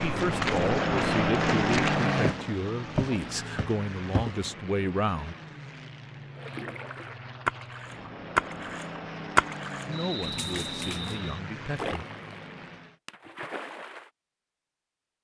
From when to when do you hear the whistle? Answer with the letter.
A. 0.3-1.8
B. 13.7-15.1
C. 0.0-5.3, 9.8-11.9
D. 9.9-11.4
D.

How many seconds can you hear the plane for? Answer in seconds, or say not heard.
13 s.